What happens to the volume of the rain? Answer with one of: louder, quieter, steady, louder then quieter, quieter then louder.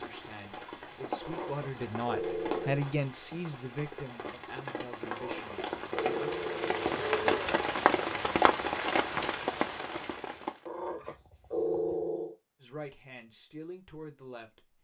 louder.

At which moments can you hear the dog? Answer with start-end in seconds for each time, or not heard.
1.2-2.9, 5.0-7.7, 10.7-12.3.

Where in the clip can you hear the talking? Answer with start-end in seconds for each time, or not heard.
0.0-6.3, 12.6-14.7.